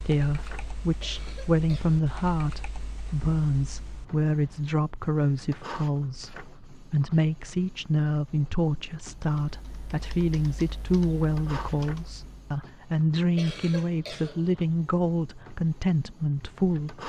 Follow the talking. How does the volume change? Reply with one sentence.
The loudness of the talking stays about the same.